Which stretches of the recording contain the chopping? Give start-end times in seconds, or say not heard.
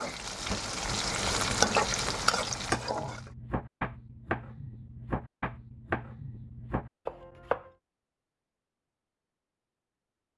2.2-7.7.